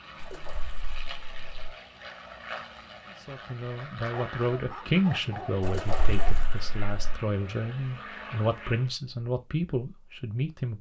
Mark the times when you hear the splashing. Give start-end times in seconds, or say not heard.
0.2-1.5, 5.6-7.2.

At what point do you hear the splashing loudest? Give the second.
6 s.